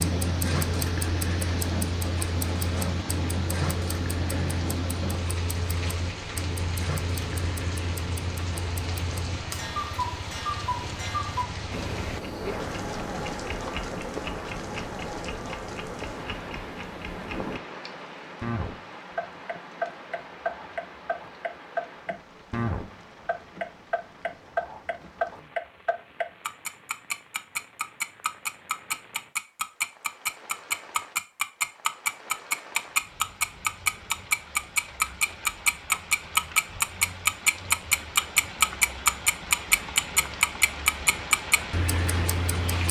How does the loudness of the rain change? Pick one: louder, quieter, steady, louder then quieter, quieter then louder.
quieter then louder.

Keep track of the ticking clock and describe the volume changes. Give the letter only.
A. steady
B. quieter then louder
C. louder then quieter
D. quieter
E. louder
E.